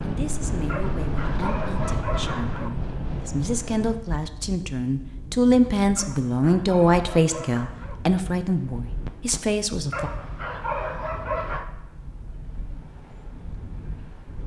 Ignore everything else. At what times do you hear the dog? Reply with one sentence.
The dog can be heard from 0.7 to 2.7 s, from 6.0 to 8.0 s and from 9.9 to 11.7 s.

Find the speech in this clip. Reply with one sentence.
The speech can be heard from 0.0 to 10.1 s.